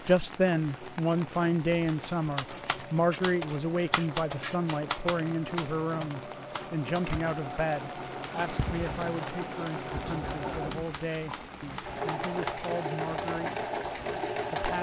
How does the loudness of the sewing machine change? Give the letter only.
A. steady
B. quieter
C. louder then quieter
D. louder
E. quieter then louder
D.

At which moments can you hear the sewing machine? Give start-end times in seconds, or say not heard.
0.0-14.7.